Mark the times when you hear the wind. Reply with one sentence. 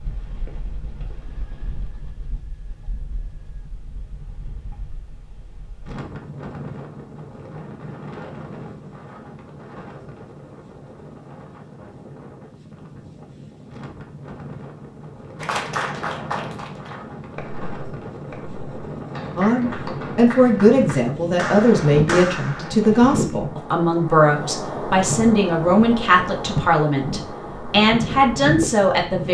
You can hear the wind from 0.0 to 29.2 s.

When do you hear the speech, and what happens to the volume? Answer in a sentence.
The speech can be heard from 19.4 to 29.2 s, at a steady volume.